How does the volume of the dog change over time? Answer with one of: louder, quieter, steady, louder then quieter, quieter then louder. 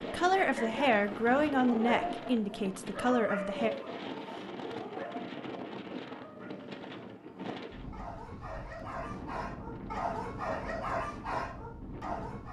quieter then louder.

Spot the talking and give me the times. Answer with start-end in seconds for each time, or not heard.
0.0-3.7.